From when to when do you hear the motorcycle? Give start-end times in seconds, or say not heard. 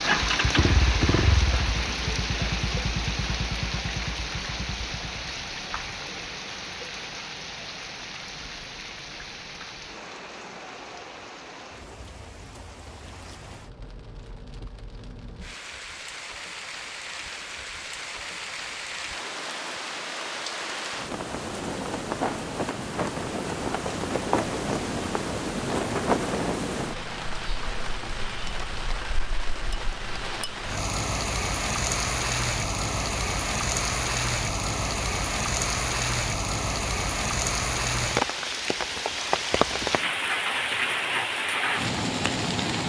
0.0-5.3.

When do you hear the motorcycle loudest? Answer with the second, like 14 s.
1 s.